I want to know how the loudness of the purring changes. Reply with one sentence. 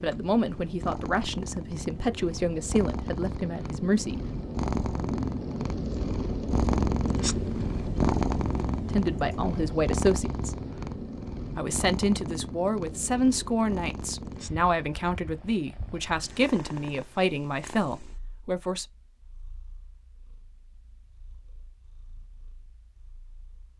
The loudness of the purring goes up, then down.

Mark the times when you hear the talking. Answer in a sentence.
The talking can be heard from 0.0 to 4.2 s, from 8.9 to 10.6 s and from 11.6 to 18.9 s.